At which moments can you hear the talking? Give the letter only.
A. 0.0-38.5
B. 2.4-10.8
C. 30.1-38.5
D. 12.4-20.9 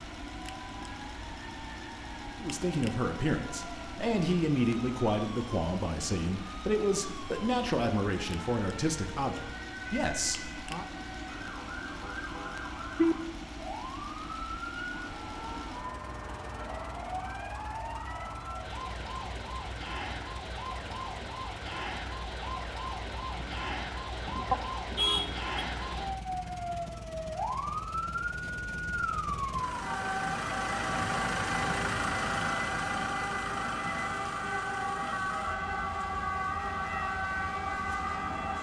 B.